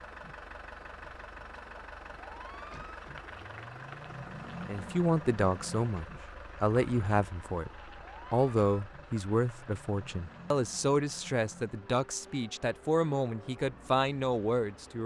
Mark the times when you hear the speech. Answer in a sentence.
You can hear the speech from 4.7 to 15.0 s.